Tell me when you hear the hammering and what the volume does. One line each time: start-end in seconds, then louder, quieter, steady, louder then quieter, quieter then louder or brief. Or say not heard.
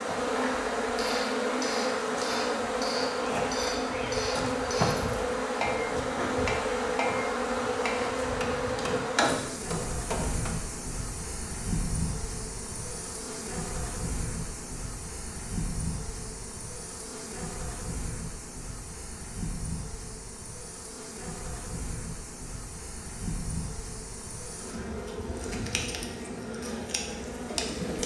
0.3-10.5 steady.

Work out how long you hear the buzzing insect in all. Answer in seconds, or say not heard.
28 s.